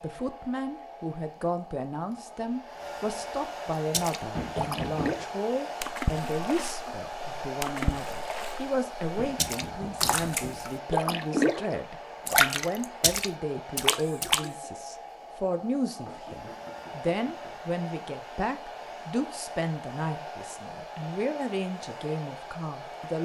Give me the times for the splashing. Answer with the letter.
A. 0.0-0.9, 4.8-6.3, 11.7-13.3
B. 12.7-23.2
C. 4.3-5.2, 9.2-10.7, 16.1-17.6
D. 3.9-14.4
D.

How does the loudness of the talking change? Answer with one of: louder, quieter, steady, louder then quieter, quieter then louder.
steady.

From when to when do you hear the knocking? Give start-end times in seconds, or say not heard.
4.3-5.2, 9.2-10.7, 16.1-17.6.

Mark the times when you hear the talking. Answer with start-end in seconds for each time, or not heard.
0.0-23.2.